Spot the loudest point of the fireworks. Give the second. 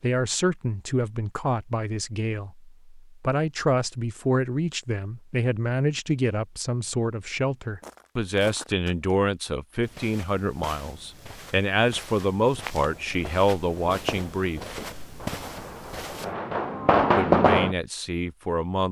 17 s.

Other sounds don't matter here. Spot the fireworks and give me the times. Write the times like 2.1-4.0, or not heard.
12.8-17.8.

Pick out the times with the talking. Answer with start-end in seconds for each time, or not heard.
0.0-14.8, 17.1-18.8.